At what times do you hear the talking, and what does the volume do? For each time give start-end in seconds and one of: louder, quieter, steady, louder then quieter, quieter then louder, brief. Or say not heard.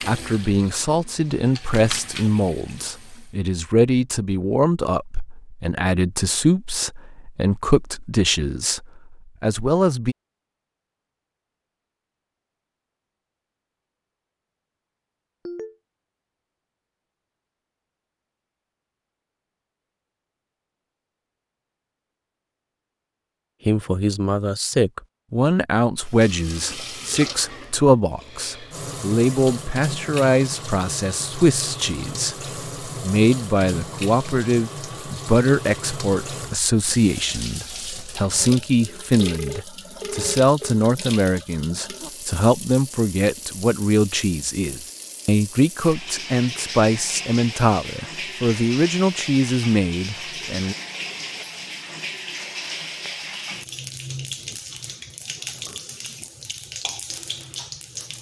0.1-10.2 steady
23.6-50.8 steady.